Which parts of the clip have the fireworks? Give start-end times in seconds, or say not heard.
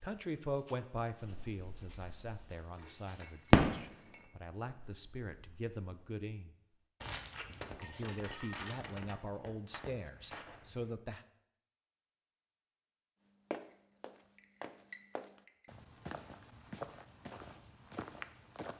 1.2-2.5, 3.5-4.1, 4.7-6.2, 7.0-10.9.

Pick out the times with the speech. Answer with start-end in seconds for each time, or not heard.
0.0-6.5, 7.7-11.2.